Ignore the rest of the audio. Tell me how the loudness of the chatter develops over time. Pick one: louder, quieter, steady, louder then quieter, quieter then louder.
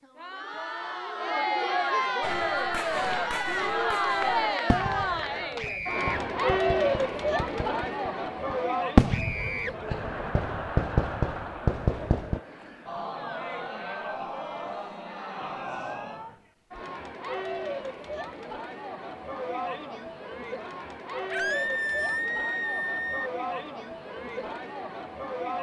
quieter.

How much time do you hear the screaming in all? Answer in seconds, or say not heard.
3 s.